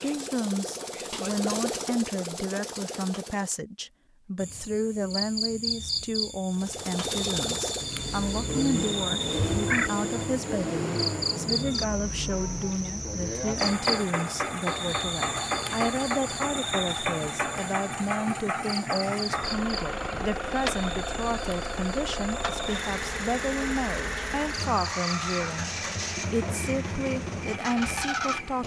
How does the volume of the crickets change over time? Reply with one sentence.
The volume of the crickets goes down.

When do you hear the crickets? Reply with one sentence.
The crickets can be heard from 4.3 to 28.6 s.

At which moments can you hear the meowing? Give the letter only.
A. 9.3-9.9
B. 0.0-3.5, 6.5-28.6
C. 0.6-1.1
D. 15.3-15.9
A.